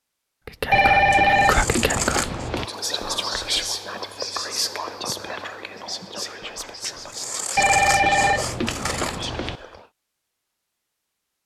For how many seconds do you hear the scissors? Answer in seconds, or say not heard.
4 s.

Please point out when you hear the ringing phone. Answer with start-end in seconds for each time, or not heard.
0.7-2.6, 7.5-9.6.